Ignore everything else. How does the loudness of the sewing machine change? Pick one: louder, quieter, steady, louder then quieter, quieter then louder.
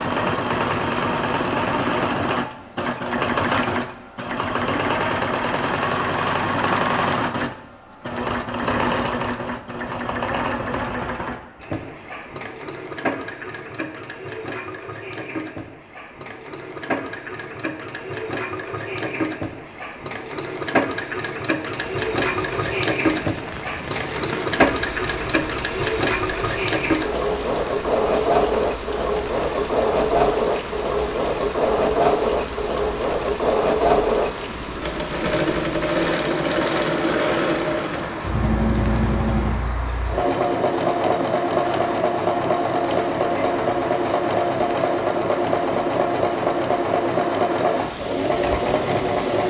quieter then louder.